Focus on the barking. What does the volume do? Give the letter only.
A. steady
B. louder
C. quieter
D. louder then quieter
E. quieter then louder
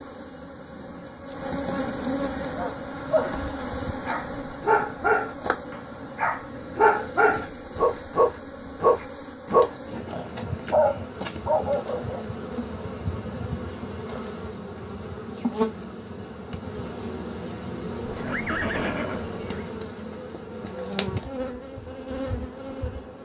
D.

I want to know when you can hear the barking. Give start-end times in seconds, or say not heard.
2.4-12.2.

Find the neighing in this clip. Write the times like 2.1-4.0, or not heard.
18.1-19.7.